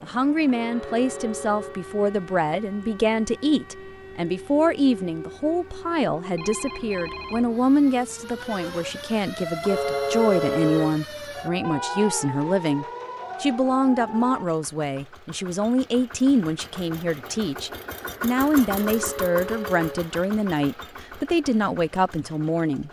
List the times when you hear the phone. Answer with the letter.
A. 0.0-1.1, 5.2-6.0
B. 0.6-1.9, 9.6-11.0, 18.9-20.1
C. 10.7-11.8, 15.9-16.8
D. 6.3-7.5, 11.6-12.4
D.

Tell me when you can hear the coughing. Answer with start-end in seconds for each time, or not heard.
not heard.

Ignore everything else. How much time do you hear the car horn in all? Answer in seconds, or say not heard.
4 s.